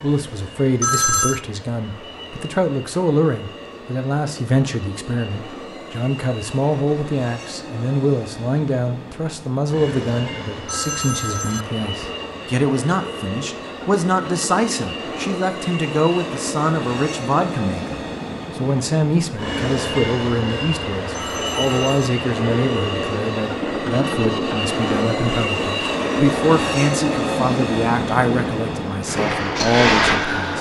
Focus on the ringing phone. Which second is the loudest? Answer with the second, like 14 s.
1 s.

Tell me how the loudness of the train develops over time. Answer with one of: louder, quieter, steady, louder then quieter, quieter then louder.
louder.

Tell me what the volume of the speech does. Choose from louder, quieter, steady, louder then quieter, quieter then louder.
steady.